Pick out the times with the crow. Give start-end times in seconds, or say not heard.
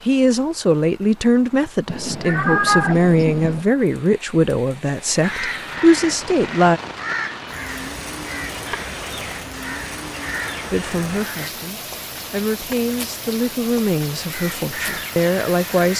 5.2-11.5, 14.2-15.9.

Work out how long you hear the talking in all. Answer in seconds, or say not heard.
12 s.